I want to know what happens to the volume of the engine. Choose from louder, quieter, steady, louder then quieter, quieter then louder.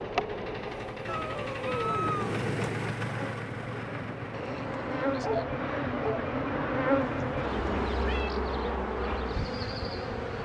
louder then quieter.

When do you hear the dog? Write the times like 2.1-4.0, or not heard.
4.3-6.3.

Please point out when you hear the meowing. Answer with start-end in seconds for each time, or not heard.
1.1-2.6, 7.0-8.3.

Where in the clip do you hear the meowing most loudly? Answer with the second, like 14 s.
2 s.